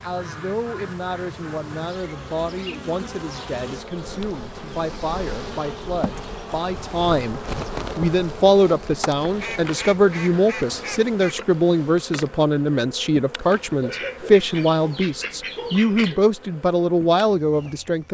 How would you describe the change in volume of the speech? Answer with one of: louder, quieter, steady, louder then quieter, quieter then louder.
louder.